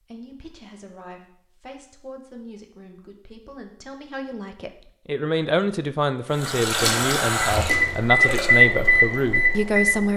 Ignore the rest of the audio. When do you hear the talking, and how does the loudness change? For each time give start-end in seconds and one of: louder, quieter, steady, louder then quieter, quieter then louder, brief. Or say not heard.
0.0-10.1 louder.